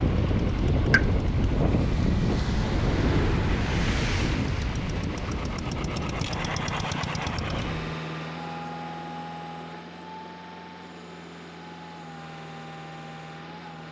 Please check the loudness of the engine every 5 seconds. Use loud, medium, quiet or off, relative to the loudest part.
medium, loud, medium.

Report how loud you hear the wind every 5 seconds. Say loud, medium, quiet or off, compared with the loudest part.
loud, medium, off.